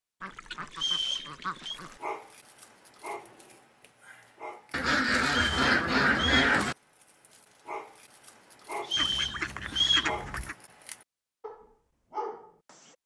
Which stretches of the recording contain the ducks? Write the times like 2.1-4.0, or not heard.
0.2-2.0, 4.7-6.8, 8.9-10.6.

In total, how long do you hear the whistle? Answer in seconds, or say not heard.
4 s.